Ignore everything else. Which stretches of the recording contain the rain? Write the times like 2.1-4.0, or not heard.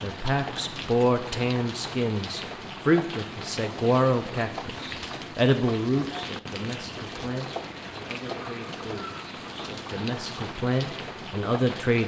0.0-12.0.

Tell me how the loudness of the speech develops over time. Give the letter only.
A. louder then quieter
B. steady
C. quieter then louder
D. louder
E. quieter
C.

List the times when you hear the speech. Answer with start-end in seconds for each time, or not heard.
0.0-12.0.